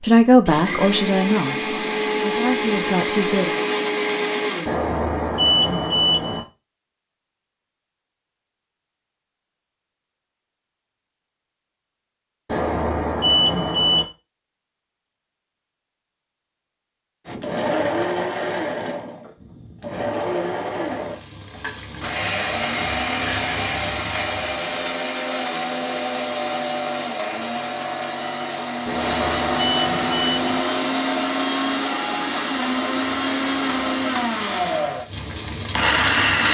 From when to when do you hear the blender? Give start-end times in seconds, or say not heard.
0.5-4.7, 17.2-36.4.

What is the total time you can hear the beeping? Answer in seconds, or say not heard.
5 s.